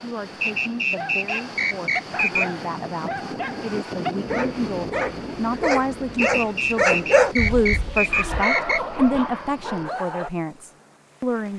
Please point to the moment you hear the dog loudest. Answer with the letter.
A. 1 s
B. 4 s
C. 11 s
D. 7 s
D.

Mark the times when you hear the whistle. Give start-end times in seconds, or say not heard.
0.4-2.5, 6.2-8.8.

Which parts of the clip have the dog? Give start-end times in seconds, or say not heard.
0.5-10.3.